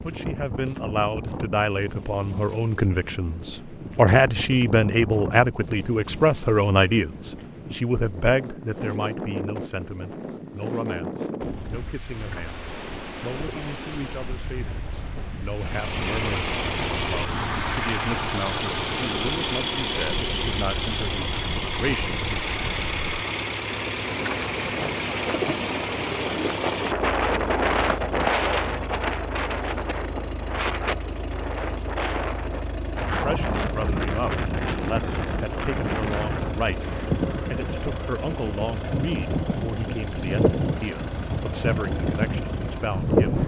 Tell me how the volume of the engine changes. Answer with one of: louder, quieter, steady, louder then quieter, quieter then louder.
quieter.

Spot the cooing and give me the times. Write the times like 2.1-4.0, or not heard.
12.1-14.0, 24.1-26.6.